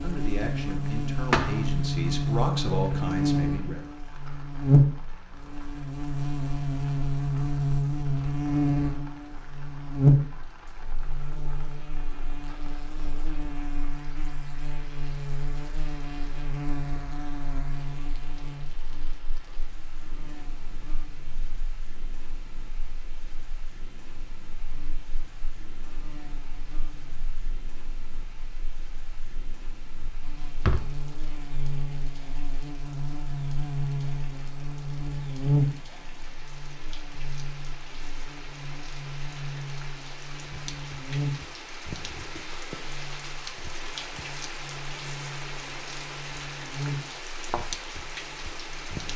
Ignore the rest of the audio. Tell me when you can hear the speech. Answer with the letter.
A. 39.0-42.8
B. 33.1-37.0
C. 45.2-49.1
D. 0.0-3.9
D.